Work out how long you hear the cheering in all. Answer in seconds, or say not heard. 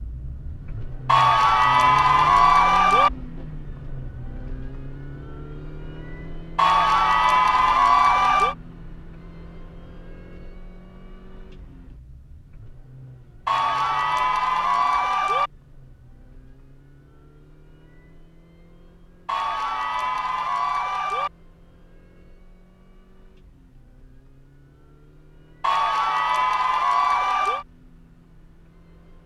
10 s.